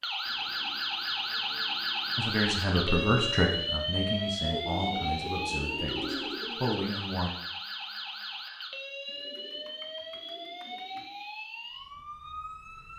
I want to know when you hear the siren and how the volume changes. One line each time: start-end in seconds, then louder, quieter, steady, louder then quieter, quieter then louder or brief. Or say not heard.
0.0-12.9 quieter.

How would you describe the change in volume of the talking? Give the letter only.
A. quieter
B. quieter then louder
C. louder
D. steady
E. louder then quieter
B.